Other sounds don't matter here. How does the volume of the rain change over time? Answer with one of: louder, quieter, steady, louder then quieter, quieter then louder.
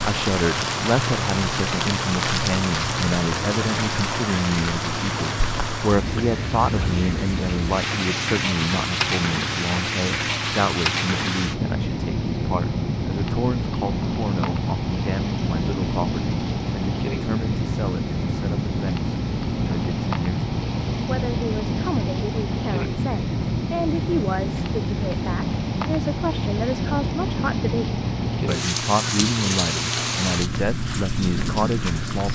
steady.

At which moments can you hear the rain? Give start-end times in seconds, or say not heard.
0.0-32.3.